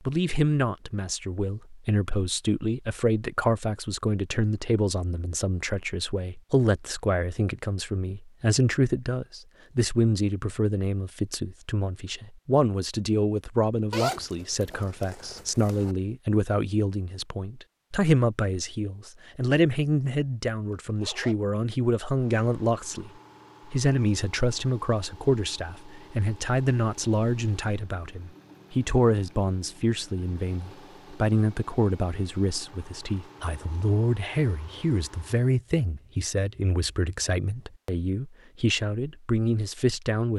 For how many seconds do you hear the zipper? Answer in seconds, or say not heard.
3 s.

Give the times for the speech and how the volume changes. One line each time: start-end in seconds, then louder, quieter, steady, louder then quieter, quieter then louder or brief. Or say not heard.
0.0-40.3 steady.